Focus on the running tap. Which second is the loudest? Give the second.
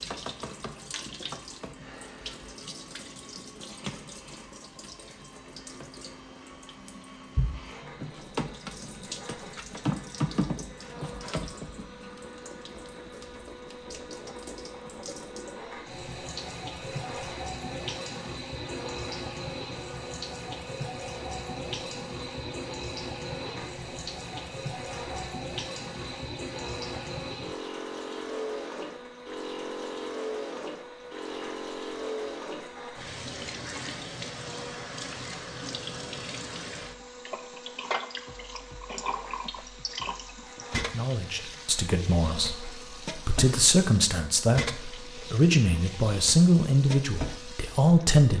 10 s.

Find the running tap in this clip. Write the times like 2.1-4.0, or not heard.
0.0-48.3.